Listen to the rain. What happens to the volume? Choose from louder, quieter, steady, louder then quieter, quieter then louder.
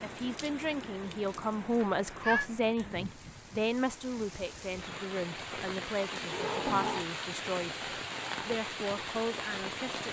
louder.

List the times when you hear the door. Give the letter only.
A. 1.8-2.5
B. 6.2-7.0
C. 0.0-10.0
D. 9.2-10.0
B.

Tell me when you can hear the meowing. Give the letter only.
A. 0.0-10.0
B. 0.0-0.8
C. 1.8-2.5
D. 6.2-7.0
C.